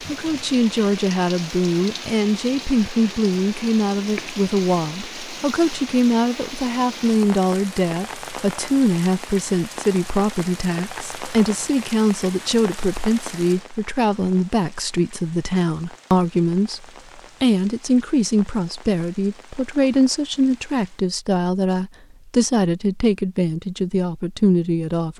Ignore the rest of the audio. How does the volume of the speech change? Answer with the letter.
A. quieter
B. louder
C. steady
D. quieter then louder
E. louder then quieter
C.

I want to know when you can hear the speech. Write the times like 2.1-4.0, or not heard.
0.1-25.1.